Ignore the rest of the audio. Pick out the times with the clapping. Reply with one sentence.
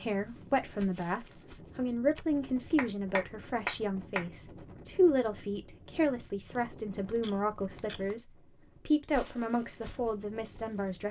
You can hear the clapping from 2.8 to 4.2 s.